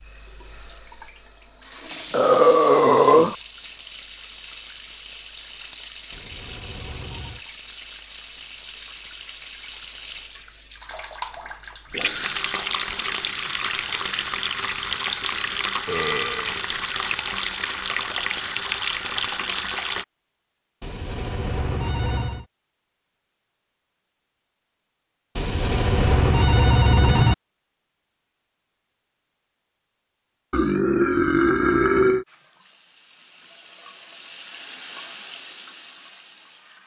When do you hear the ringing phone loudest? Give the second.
27 s.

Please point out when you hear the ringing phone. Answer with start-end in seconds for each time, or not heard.
6.1-7.5, 20.8-22.4, 25.4-27.4.